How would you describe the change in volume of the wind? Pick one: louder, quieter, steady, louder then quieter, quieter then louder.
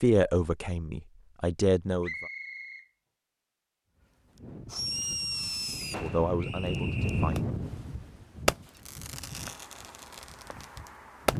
louder then quieter.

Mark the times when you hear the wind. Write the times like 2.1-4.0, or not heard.
4.0-11.3.